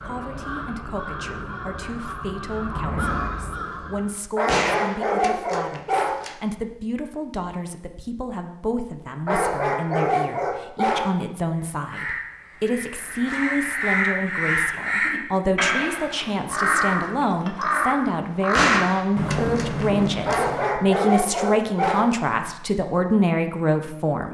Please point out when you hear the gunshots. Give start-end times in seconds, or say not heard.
4.5-6.3, 18.5-20.4.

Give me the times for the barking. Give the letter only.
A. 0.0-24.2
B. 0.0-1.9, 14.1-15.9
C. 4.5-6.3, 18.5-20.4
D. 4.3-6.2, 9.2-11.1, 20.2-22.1
D.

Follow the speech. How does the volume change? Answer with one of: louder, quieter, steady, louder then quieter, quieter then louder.
louder.